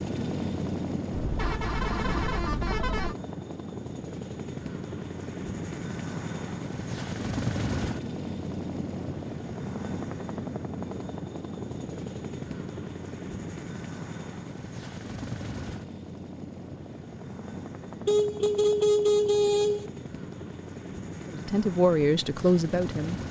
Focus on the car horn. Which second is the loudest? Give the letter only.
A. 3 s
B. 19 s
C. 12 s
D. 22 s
B.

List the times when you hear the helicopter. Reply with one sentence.
You can hear the helicopter from 0.0 to 23.2 s.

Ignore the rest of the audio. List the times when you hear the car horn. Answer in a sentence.
The car horn can be heard from 1.1 to 3.1 s and from 18.1 to 19.9 s.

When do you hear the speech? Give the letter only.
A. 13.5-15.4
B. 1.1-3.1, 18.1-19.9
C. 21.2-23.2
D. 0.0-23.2
C.